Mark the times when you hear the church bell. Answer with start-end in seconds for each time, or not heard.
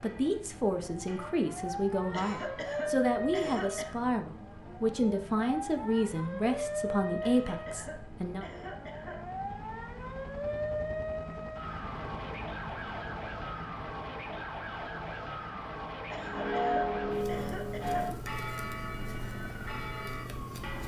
0.0-2.7, 16.1-20.8.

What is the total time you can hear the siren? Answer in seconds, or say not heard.
21 s.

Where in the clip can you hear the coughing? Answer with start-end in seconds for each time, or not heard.
2.1-4.0, 7.2-9.2, 16.1-18.1.